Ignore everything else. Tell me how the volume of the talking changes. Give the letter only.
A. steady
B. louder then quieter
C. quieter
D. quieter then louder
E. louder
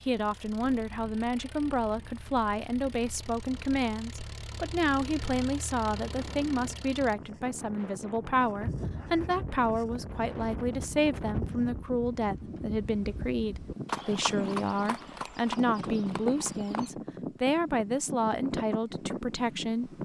A.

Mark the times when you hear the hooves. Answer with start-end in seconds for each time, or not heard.
8.6-16.9.